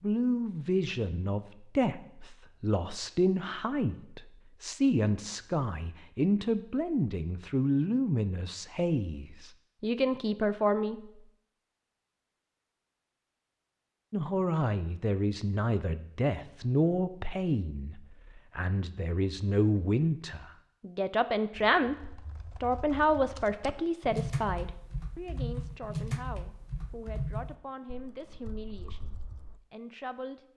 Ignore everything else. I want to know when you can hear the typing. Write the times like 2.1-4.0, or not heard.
21.8-29.6.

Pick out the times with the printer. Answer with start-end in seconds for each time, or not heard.
not heard.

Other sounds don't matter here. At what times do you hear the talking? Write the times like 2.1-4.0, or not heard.
0.0-11.0, 14.1-30.4.